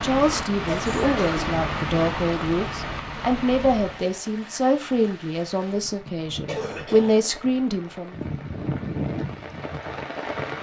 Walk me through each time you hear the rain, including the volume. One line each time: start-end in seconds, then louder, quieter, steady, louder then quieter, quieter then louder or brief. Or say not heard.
0.0-10.5 quieter then louder.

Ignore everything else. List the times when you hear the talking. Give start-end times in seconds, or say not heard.
0.0-8.2.